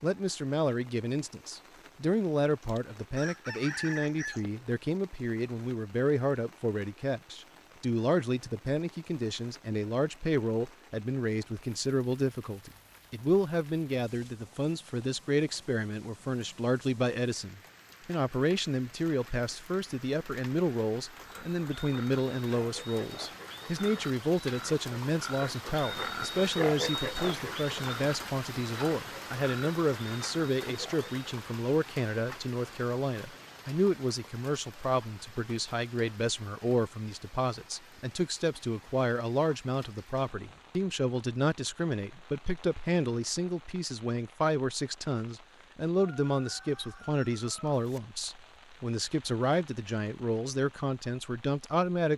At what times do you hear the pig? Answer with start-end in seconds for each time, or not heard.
21.2-31.3.